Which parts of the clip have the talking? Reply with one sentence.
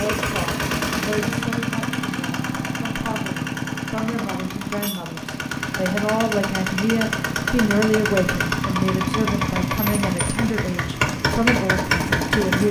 You can hear the talking from 0.0 to 12.6 s.